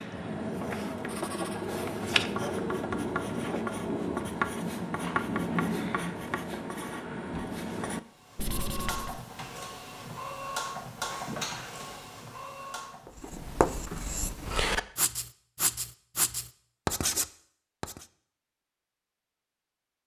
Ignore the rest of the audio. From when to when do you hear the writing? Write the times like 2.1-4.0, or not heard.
0.0-9.2, 13.1-18.1.